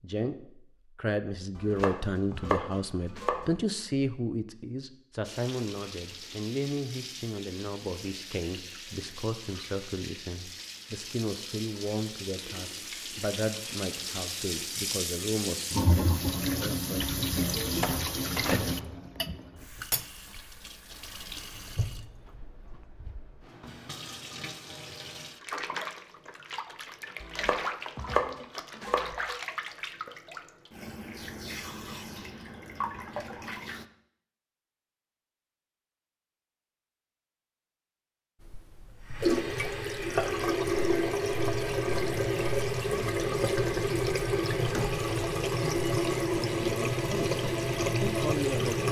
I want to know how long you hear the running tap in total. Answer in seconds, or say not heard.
39 s.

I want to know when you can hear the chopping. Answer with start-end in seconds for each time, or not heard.
1.6-3.5, 27.2-29.1.